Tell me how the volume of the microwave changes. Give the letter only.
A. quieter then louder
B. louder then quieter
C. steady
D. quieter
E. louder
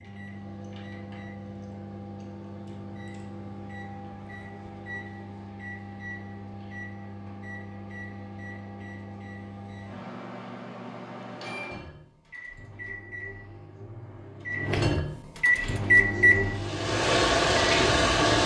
E.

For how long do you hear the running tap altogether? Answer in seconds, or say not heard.
3 s.